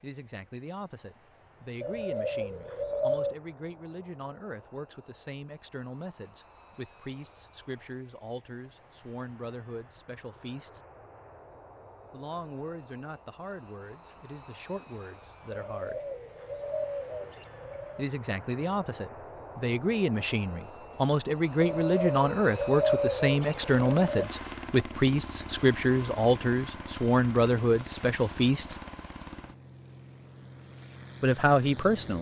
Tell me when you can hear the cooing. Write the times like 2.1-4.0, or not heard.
1.8-3.4, 15.6-18.1, 21.6-24.3.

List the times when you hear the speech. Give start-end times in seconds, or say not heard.
0.0-10.8, 12.1-16.0, 17.9-28.8, 31.2-32.1.